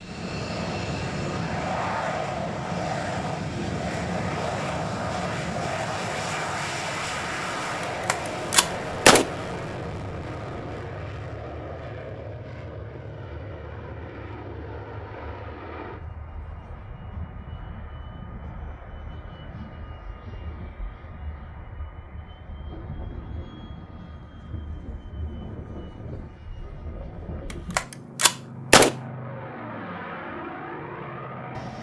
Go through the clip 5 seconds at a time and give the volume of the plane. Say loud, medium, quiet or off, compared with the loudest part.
loud, loud, medium, quiet, quiet, medium, medium.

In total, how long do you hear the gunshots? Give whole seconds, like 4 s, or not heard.
3 s.